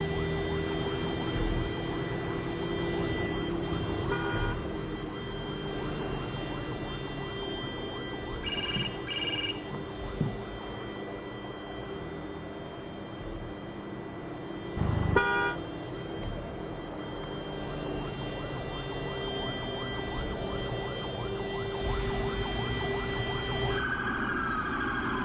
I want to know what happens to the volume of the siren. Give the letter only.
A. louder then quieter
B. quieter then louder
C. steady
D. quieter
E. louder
B.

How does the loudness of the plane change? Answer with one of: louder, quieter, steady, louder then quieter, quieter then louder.
steady.